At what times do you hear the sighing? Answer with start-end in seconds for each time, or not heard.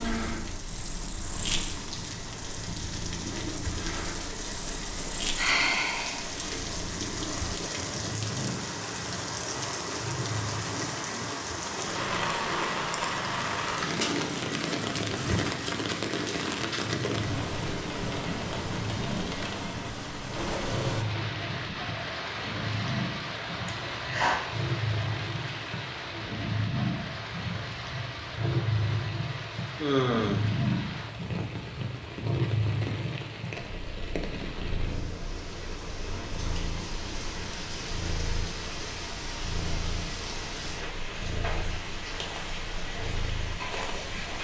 5.3-6.4, 23.6-24.4, 29.8-30.4.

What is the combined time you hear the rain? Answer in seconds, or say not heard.
44 s.